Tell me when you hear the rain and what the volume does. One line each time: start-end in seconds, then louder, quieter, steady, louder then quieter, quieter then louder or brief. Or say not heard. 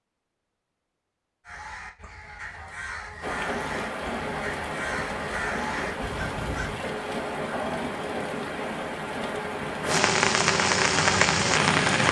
3.2-12.0 louder.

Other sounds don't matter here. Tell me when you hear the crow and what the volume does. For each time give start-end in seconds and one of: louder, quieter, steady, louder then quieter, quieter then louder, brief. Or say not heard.
1.4-6.8 louder.